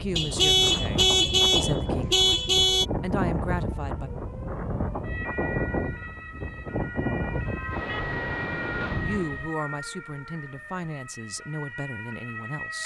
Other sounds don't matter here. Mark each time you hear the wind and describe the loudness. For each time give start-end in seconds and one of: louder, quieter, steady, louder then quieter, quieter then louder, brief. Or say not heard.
0.0-9.5 steady.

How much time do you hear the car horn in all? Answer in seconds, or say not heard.
5 s.